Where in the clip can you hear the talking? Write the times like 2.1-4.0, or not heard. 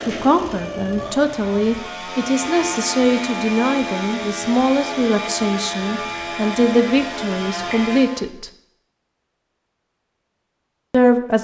0.1-8.5, 10.9-11.3.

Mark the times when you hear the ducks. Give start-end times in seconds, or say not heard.
not heard.